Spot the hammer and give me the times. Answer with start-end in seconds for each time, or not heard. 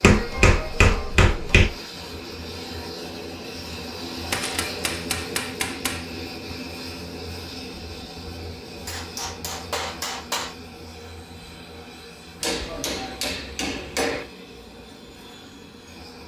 0.0-1.7, 4.3-6.1, 8.8-10.6, 12.4-14.2.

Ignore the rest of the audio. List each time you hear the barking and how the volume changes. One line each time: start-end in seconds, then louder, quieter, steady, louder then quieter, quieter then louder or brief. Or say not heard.
not heard.